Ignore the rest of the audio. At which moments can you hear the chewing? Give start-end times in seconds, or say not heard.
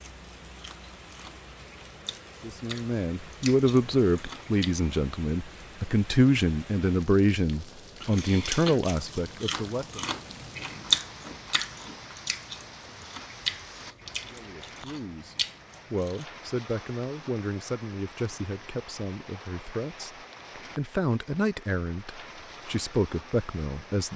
0.0-4.9, 8.0-16.2.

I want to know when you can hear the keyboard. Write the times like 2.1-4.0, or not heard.
not heard.